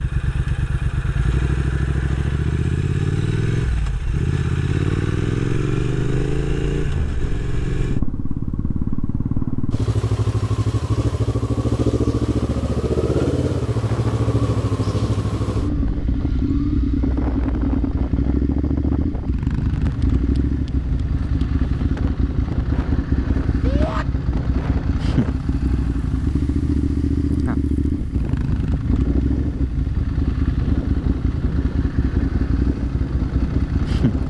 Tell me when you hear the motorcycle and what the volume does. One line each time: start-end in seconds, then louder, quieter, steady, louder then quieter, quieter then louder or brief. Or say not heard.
0.0-34.2 steady.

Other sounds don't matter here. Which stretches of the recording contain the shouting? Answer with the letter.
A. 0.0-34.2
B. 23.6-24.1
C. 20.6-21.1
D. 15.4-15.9
B.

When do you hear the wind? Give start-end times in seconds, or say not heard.
13.7-34.2.